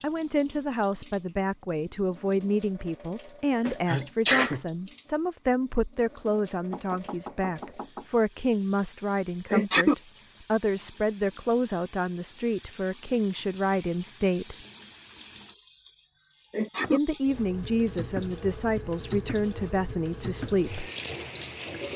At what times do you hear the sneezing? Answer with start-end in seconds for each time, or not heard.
3.6-4.6, 9.5-9.9, 16.5-17.0.